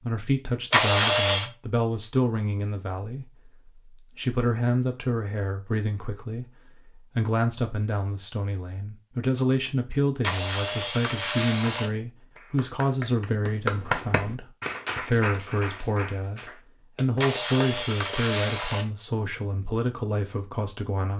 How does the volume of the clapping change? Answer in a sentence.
The loudness of the clapping goes down.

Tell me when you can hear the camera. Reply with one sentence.
The camera can be heard from 0.7 to 1.5 s, from 10.2 to 11.9 s and from 17.2 to 18.9 s.